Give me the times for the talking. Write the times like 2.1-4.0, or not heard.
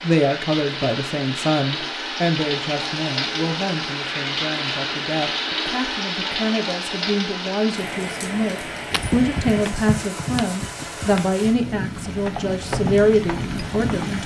0.0-14.2.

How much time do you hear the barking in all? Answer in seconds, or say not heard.
not heard.